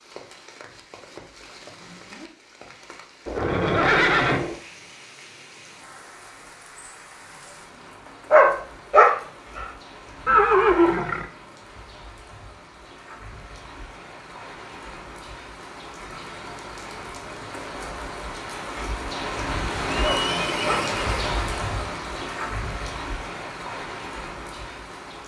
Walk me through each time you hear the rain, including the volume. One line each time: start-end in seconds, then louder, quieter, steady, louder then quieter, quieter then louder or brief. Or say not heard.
0.0-25.2 louder.